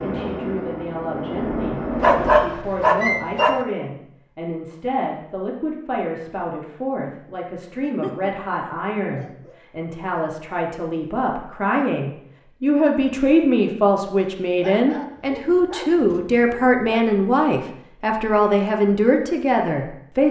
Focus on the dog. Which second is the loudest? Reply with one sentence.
The volume of the dog peaks at 2 seconds.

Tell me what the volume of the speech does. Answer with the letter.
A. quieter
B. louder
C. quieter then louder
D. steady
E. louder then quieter
B.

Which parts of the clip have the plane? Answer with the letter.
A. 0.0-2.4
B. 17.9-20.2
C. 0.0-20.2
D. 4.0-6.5
A.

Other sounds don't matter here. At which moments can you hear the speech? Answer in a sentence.
You can hear the speech from 0.0 to 20.2 s.